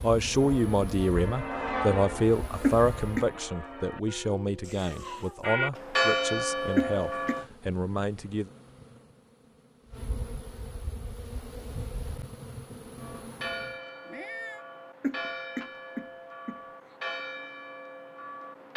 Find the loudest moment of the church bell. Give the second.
6 s.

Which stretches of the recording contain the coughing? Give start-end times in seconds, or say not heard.
2.6-3.3, 6.8-7.3, 15.0-16.6.